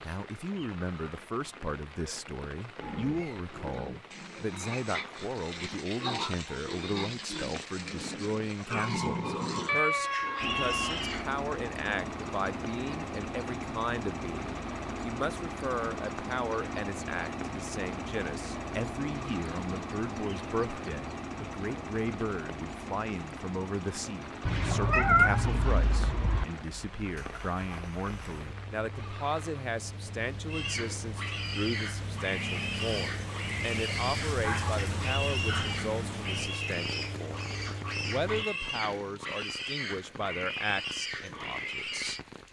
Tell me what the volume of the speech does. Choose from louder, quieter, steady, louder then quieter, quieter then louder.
steady.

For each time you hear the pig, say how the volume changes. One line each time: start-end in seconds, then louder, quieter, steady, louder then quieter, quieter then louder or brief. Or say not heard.
2.8-11.3 louder
30.4-42.2 steady.